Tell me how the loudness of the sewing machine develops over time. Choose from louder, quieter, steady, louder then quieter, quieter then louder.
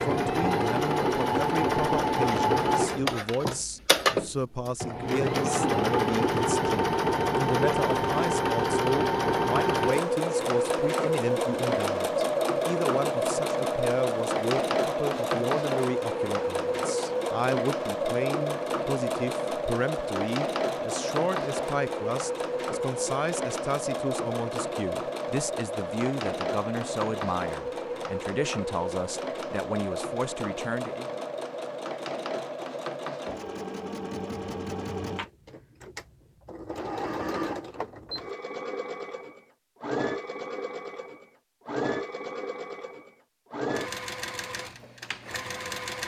quieter.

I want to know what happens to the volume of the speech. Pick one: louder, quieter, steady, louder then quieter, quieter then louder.
steady.